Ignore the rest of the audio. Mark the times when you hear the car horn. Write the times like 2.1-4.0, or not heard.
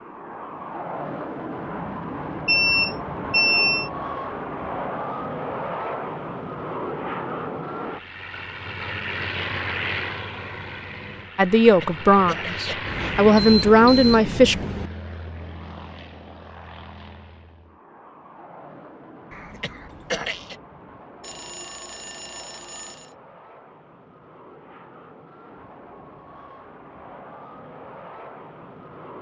not heard.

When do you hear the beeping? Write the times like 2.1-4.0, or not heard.
2.5-3.9, 12.8-14.9, 21.2-23.1.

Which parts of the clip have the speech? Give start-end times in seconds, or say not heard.
11.3-14.6.